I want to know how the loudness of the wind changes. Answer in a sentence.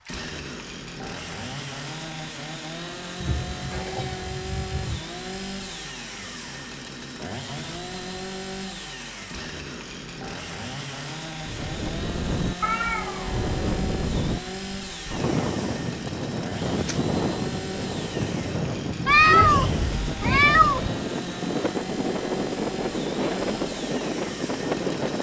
The loudness of the wind stays about the same.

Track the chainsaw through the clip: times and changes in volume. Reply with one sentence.
The chainsaw can be heard from 0.0 to 25.1 s, at a steady volume.